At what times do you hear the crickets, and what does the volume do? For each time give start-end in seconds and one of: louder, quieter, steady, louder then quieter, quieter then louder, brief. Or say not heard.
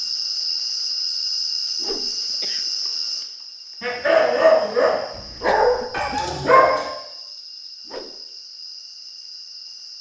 0.0-9.9 quieter.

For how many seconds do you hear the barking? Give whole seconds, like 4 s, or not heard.
3 s.